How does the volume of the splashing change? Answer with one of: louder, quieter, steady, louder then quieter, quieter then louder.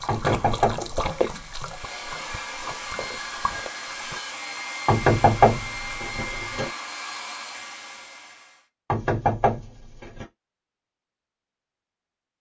quieter then louder.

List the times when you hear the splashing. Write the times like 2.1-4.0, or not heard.
0.0-4.2.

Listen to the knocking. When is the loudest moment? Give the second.
5 s.